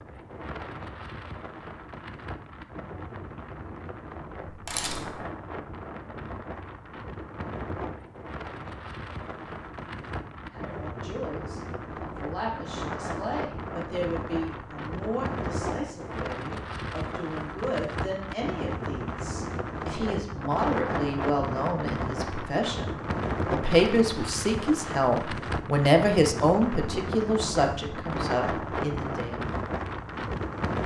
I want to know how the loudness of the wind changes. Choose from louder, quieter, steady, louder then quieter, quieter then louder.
louder.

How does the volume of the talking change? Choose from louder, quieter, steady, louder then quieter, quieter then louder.
louder.